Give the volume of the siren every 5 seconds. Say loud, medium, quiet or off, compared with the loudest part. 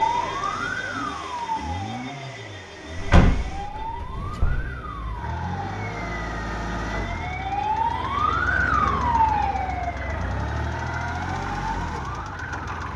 medium, loud, quiet.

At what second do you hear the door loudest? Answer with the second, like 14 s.
3 s.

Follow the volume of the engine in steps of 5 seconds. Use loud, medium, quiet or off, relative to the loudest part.
medium, loud, loud.